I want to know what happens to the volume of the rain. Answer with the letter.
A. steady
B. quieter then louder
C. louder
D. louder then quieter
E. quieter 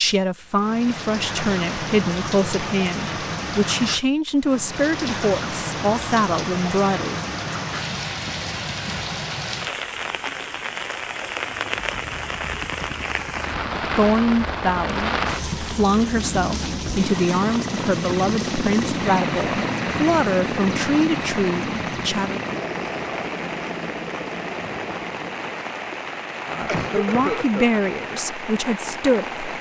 A.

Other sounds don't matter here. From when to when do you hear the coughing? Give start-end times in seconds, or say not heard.
26.6-27.8.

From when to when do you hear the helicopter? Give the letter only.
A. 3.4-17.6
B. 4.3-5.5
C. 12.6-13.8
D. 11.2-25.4
D.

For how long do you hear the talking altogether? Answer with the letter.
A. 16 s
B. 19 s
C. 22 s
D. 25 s
B.